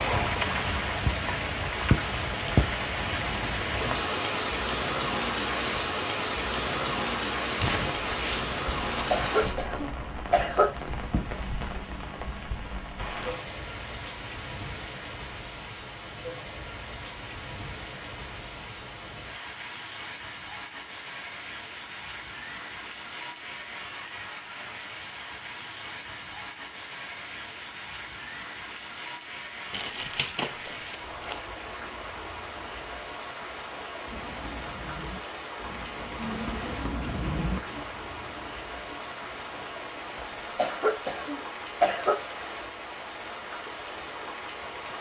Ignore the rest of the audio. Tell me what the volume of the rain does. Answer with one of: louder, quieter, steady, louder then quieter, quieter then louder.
quieter.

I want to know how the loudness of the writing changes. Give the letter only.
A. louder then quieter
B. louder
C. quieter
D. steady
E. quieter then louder
A.